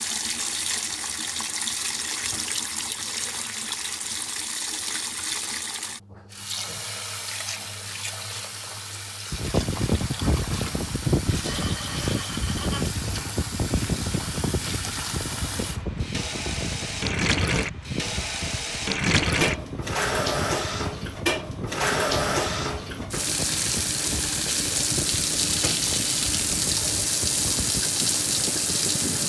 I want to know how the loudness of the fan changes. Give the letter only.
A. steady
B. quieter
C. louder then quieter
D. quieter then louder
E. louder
B.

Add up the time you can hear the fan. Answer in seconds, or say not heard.
20 s.